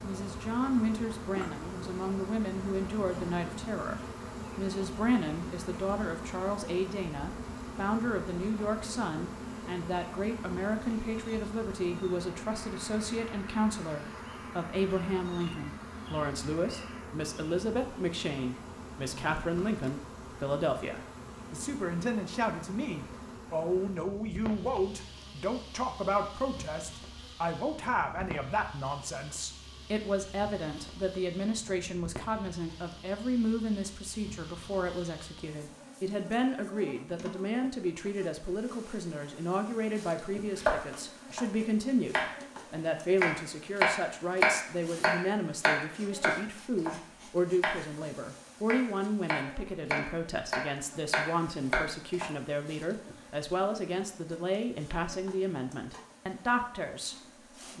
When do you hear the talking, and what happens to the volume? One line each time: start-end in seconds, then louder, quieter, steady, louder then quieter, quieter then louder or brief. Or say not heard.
0.0-57.7 steady.